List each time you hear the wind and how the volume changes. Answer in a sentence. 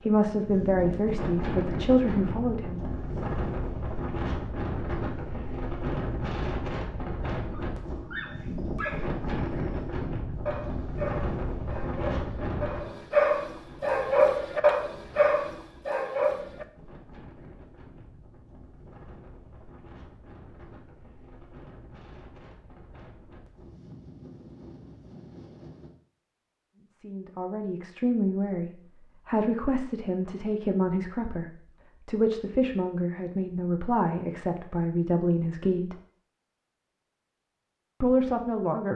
The wind can be heard from 0.0 to 25.9 s, getting quieter.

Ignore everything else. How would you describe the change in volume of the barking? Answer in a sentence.
The volume of the barking goes up.